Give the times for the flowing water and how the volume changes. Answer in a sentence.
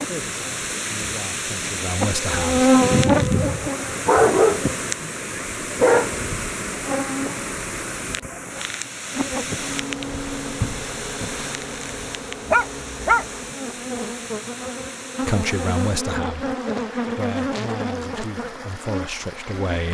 You can hear the flowing water from 0.0 to 19.8 s, getting quieter.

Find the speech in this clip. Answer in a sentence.
You can hear the speech from 0.1 to 2.6 s and from 15.2 to 19.8 s.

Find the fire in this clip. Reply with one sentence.
You can't hear the fire here.